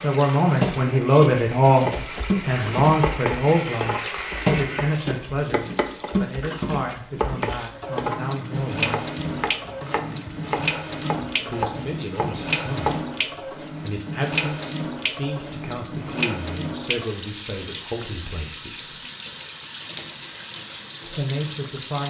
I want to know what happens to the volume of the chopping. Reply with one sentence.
The loudness of the chopping stays about the same.